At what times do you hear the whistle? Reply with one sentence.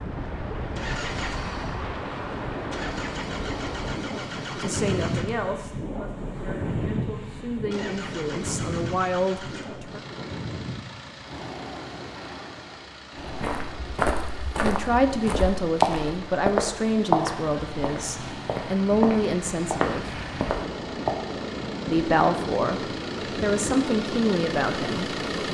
You can't hear the whistle here.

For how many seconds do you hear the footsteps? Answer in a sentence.
You can hear the footsteps for 8 seconds altogether.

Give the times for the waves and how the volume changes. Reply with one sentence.
The waves can be heard from 0.0 to 25.4 s, getting quieter then louder.